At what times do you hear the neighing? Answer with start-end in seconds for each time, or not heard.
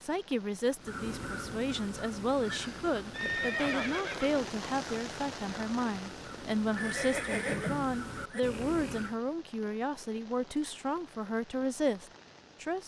3.1-4.5, 6.8-8.4.